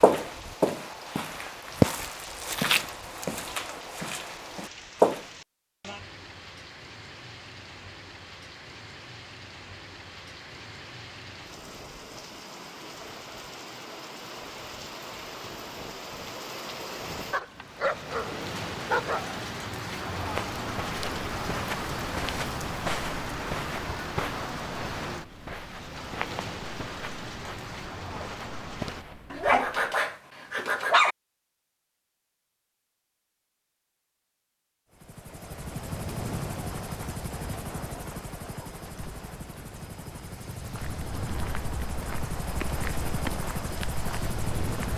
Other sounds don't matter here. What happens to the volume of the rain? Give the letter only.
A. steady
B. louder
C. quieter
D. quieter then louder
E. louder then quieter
B.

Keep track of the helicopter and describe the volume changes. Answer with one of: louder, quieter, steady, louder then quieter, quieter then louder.
quieter then louder.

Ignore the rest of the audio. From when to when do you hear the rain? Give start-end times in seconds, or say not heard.
0.0-29.1.